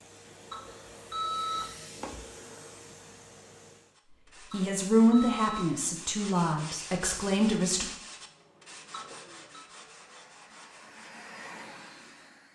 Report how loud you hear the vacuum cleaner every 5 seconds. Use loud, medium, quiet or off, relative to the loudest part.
loud, quiet, loud.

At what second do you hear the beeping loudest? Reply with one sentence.
The volume of the beeping peaks at 1 second.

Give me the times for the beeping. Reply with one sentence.
You can hear the beeping from 0.5 to 1.7 s, from 4.5 to 5.7 s and from 8.9 to 9.6 s.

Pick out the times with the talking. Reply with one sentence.
You can hear the talking from 4.5 to 7.8 s.